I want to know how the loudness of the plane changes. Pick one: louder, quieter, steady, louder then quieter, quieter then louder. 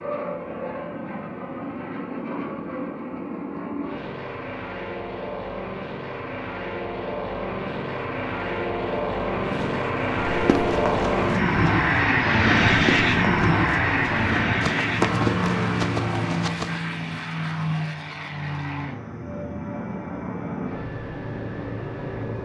louder then quieter.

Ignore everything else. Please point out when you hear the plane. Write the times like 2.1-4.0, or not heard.
0.0-22.4.